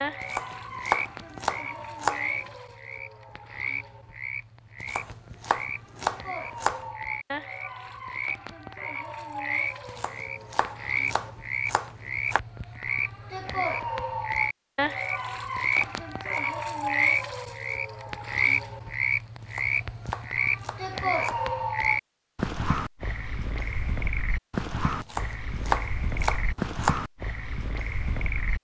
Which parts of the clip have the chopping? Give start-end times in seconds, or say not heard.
0.2-2.2, 4.8-6.8, 9.8-12.4, 15.1-16.6, 19.4-21.4, 25.0-26.9.